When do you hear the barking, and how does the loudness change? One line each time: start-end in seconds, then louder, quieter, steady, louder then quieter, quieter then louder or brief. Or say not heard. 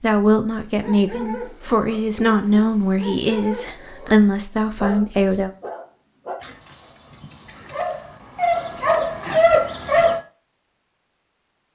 0.8-10.2 louder.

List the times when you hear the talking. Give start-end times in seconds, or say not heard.
0.0-5.5.